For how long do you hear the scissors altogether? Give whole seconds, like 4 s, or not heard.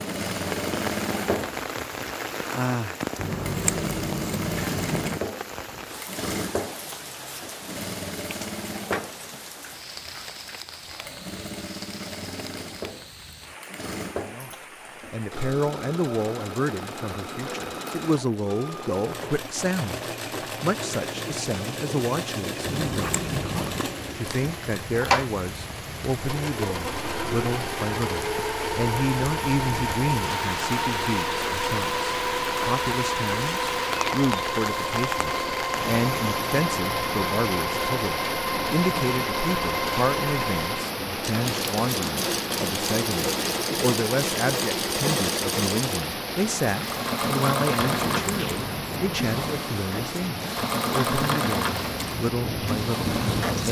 5 s.